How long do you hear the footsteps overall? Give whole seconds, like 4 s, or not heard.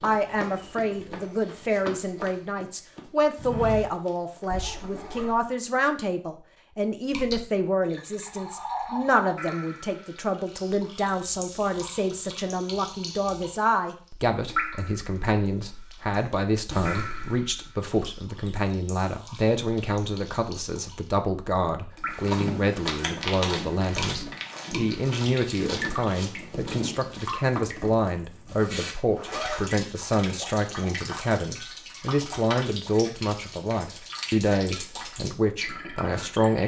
10 s.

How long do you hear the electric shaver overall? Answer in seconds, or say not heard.
not heard.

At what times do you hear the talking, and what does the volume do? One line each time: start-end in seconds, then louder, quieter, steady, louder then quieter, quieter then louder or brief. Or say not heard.
0.0-36.6 steady.